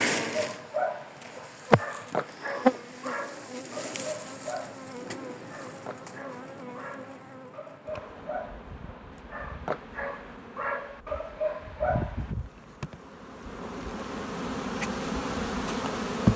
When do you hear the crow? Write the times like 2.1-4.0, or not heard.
not heard.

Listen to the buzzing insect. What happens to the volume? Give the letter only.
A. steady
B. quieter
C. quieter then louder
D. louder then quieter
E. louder
C.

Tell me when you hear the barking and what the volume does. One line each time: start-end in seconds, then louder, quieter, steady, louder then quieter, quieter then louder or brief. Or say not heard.
0.3-12.3 quieter then louder.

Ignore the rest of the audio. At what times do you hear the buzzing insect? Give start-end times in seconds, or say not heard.
0.0-16.3.